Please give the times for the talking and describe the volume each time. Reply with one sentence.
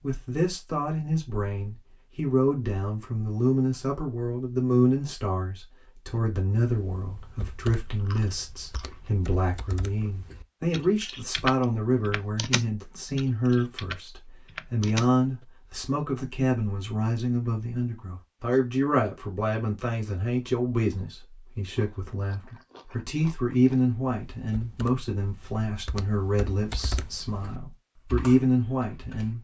The talking can be heard from 0.0 to 29.3 s, at a steady volume.